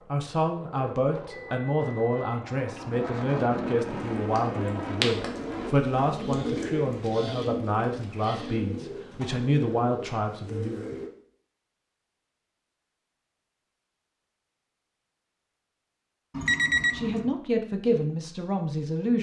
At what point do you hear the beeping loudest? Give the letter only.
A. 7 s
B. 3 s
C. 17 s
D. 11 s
C.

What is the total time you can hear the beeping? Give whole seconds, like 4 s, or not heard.
2 s.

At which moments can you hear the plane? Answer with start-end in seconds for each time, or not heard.
0.0-5.8.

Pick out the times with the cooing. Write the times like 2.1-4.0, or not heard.
4.0-11.1.